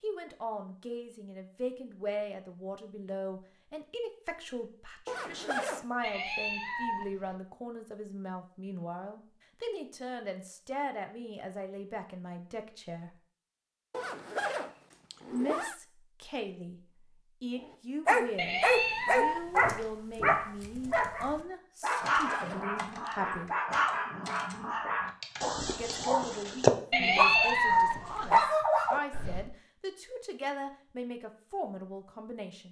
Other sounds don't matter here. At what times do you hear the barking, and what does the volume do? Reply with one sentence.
You can hear the barking from 17.6 to 29.4 s, getting quieter then louder.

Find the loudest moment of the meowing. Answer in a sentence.
The volume of the meowing peaks at 28 seconds.